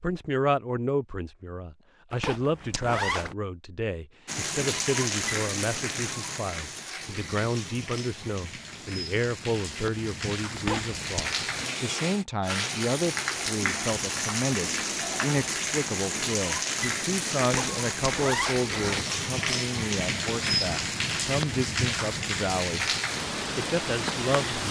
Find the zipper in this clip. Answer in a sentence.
The zipper can be heard from 2.1 to 3.4 s, from 10.6 to 11.3 s and from 17.4 to 19.1 s.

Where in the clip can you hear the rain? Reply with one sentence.
The rain can be heard from 4.2 to 24.6 s.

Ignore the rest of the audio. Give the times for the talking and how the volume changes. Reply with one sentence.
You can hear the talking from 0.0 to 22.9 s, at a steady volume; and briefly from 23.6 to 24.6 s.